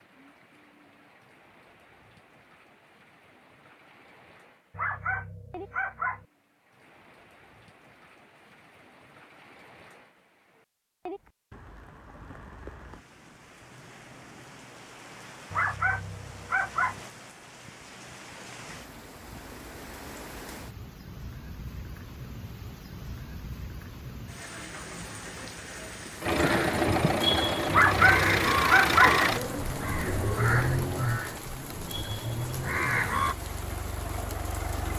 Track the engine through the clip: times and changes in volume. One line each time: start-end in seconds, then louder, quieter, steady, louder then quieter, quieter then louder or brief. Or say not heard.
26.2-34.9 quieter.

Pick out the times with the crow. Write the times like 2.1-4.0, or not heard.
26.2-33.4.